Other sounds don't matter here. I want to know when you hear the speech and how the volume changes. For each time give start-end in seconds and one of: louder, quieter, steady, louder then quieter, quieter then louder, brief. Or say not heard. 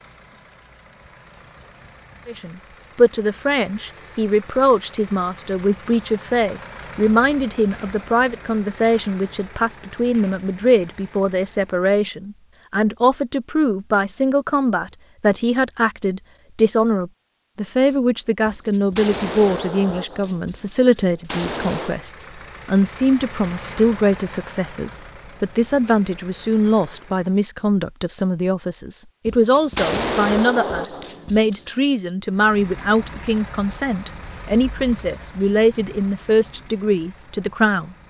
2.2-38.0 steady.